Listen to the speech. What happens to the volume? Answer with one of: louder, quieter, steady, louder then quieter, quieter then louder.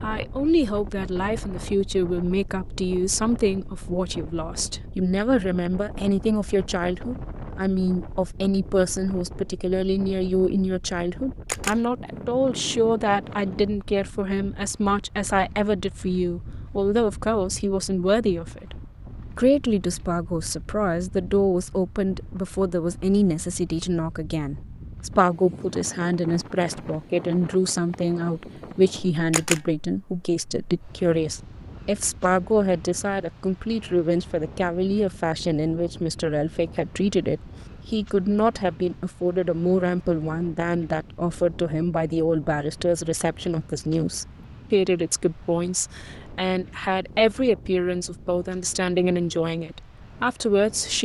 steady.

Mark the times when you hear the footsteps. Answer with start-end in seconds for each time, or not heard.
not heard.